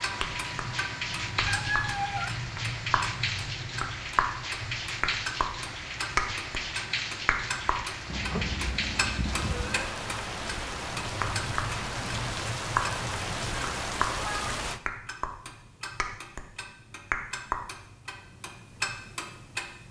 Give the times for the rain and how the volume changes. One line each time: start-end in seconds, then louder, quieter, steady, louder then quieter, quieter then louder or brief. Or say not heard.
0.0-14.8 steady.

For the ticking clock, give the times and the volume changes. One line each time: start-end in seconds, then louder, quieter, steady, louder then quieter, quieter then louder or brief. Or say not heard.
0.0-19.8 steady.